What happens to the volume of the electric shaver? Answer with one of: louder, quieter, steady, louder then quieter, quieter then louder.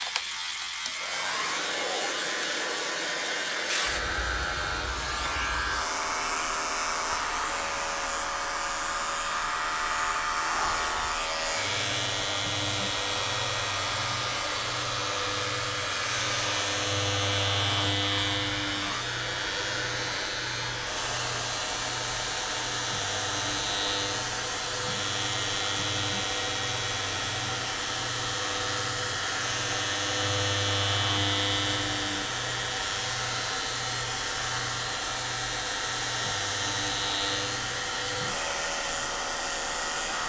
steady.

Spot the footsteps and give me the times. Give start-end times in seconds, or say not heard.
not heard.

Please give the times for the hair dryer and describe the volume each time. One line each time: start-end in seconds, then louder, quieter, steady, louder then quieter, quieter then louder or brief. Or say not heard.
0.0-40.2 steady.